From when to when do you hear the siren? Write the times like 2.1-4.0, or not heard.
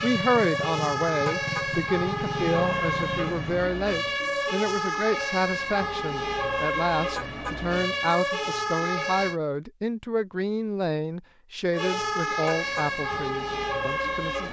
0.0-9.4, 11.7-14.4.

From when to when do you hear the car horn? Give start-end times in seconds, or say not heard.
1.2-1.7, 7.2-7.6, 12.4-12.9.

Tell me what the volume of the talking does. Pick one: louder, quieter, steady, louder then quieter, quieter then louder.
steady.